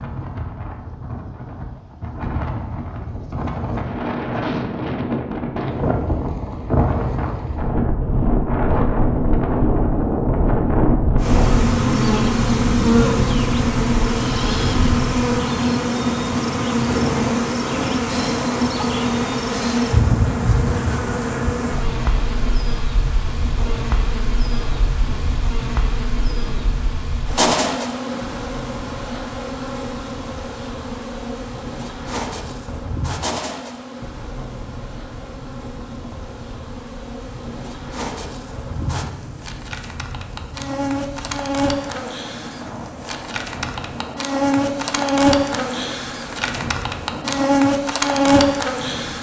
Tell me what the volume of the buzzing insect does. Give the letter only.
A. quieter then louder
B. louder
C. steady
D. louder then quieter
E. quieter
A.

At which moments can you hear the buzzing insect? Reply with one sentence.
The buzzing insect can be heard from 11.2 to 49.1 s.